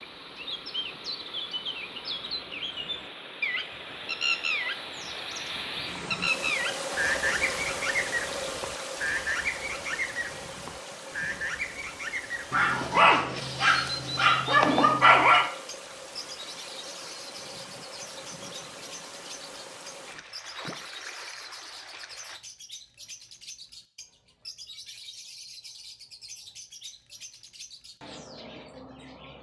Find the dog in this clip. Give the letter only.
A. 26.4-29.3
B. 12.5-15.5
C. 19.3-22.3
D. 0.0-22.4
B.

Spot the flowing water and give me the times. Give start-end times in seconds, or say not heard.
0.0-22.4.